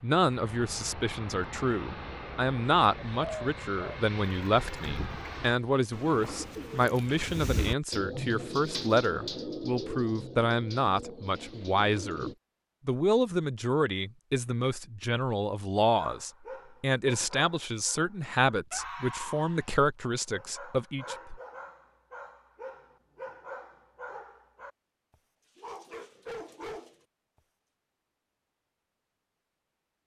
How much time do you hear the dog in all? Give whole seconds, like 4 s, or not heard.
11 s.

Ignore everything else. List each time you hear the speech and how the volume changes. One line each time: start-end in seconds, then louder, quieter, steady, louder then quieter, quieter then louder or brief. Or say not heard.
0.0-21.4 steady.